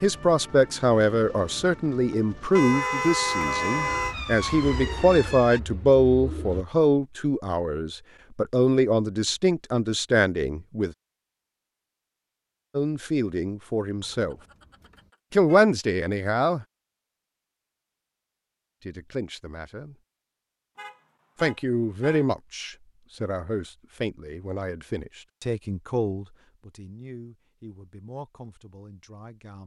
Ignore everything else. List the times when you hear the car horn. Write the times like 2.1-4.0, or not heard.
2.5-4.2, 13.9-15.7, 20.8-22.2.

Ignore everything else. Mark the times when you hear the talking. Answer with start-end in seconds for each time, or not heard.
0.0-10.9, 12.7-14.3, 15.3-16.6, 18.9-19.9, 21.4-29.6.